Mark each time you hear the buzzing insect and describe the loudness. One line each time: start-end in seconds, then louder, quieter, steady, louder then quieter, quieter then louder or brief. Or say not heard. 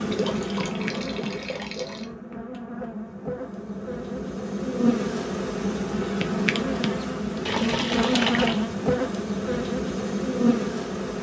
0.0-11.1 louder.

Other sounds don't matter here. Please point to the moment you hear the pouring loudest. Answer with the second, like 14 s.
8 s.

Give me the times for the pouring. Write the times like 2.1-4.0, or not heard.
0.1-2.0, 7.5-8.7.